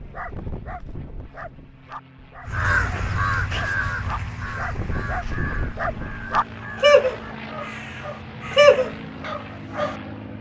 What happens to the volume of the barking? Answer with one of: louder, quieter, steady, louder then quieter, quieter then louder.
louder.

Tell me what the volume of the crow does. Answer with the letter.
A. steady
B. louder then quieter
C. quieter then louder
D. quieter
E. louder
D.